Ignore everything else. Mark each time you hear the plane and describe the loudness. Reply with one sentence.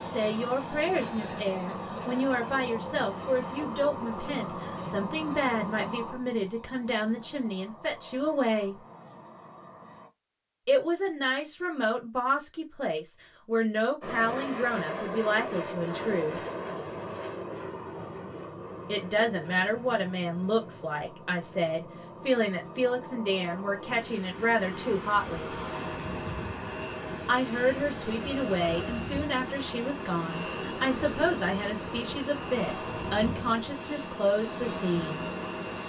The plane can be heard from 0.0 to 10.1 s, getting quieter; and from 14.0 to 35.8 s, getting quieter then louder.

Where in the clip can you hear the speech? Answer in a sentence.
You can hear the speech from 0.0 to 8.8 s, from 10.7 to 16.4 s, from 18.9 to 25.5 s and from 27.2 to 35.3 s.